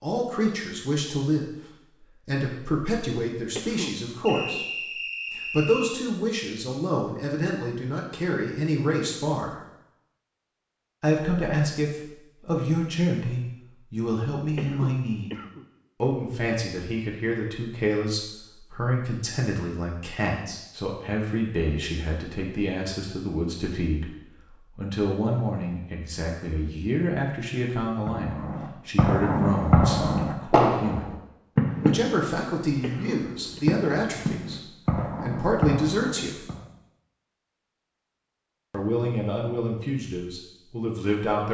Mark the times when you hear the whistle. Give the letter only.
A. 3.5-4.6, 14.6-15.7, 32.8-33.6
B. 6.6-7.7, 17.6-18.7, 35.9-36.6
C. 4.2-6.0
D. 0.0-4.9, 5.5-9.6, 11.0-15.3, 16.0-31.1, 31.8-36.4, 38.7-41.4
C.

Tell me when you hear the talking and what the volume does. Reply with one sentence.
You can hear the talking from 0.0 to 4.9 s, at a steady volume; from 5.5 to 9.6 s, at a steady volume; from 11.0 to 15.3 s, at a steady volume; from 16.0 to 31.1 s, at a steady volume; from 31.8 to 36.4 s, getting quieter then louder; and briefly from 38.7 to 41.4 s.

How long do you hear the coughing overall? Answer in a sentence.
The coughing can be heard for 3 seconds in total.